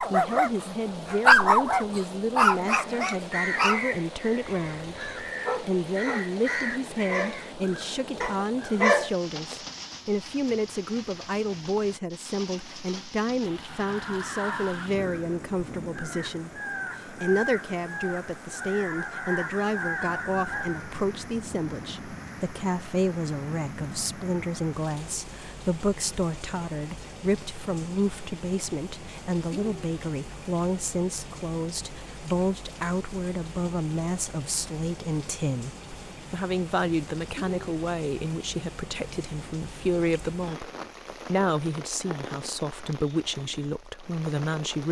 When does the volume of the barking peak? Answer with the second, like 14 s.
1 s.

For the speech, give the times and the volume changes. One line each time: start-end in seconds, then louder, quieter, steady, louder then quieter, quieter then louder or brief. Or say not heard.
0.1-44.8 steady.